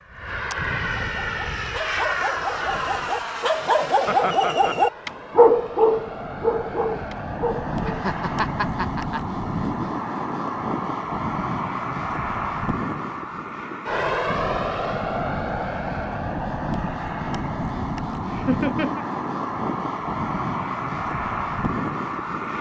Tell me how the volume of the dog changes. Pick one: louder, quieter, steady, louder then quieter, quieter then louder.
louder then quieter.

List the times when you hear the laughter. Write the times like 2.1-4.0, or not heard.
4.0-4.8, 7.8-9.2, 18.2-19.1.